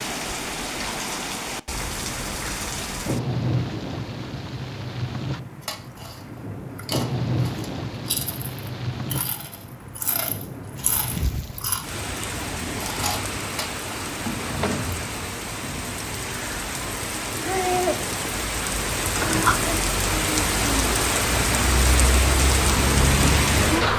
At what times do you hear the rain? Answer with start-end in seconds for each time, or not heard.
0.0-23.9.